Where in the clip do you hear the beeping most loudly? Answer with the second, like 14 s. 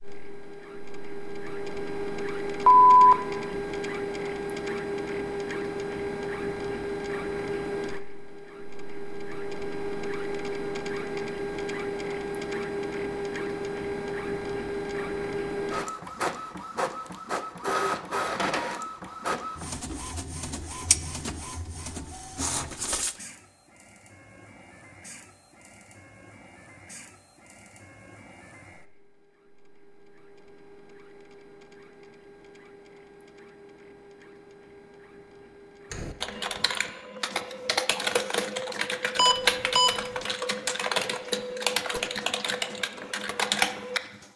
3 s.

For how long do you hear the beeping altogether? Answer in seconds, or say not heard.
2 s.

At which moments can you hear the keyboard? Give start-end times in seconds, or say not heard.
35.9-44.3.